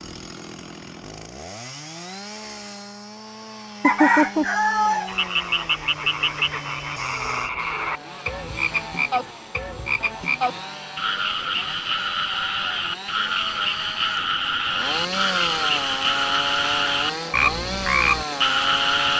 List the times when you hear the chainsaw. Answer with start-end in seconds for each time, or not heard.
0.0-19.1.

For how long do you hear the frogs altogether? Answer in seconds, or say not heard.
14 s.